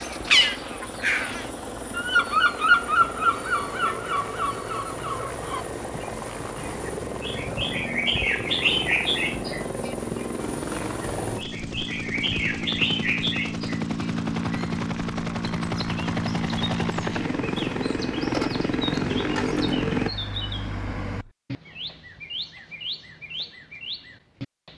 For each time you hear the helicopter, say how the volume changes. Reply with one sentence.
You can hear the helicopter from 0.0 to 20.1 s, getting louder.